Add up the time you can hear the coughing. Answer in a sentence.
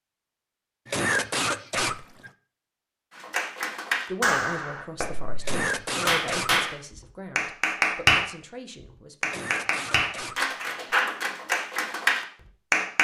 The coughing can be heard for 4 seconds in total.